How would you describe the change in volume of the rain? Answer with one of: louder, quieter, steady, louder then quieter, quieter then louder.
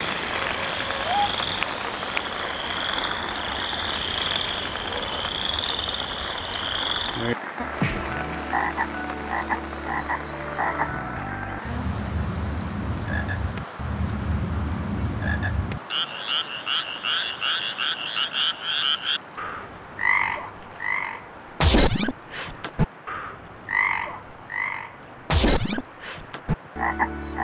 quieter.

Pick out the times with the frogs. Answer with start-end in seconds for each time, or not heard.
0.0-27.3.